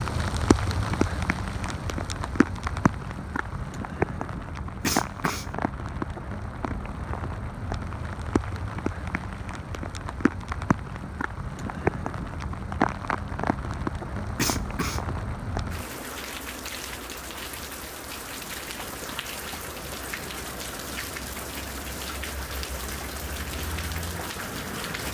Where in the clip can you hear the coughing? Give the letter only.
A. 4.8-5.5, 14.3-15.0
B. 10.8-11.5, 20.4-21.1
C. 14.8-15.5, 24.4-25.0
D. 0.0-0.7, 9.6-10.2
A.